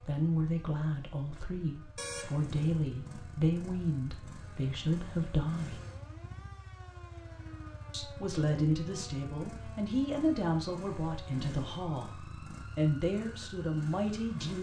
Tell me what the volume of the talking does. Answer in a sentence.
The loudness of the talking stays about the same.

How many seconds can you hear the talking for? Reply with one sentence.
The talking can be heard for 12 seconds in total.